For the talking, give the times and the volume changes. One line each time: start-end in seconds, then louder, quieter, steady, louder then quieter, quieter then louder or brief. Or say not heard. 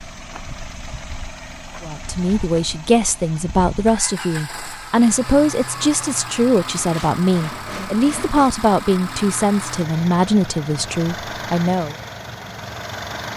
1.8-11.9 steady.